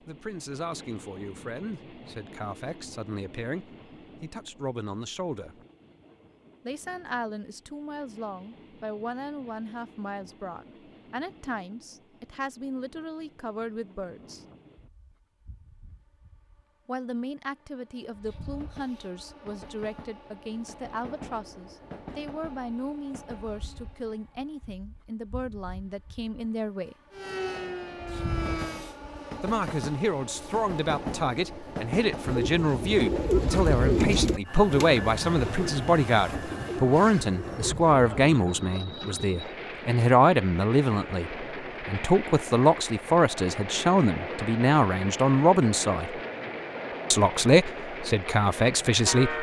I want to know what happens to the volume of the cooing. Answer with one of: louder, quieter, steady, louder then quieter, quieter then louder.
quieter.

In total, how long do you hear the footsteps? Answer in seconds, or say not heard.
not heard.